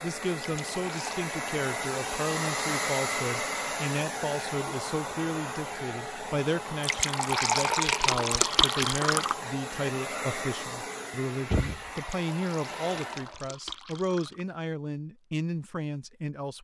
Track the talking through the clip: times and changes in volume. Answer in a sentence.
You can hear the talking from 0.0 to 16.5 s, at a steady volume.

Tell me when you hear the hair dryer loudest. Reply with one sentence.
The volume of the hair dryer peaks at 3 seconds.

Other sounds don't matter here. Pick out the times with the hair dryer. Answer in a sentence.
You can hear the hair dryer from 0.0 to 13.4 s.